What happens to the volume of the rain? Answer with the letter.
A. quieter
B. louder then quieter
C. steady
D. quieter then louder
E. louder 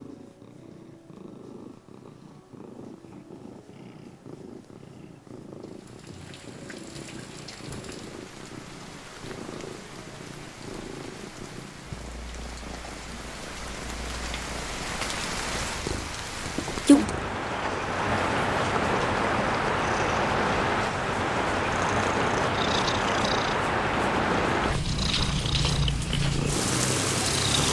E.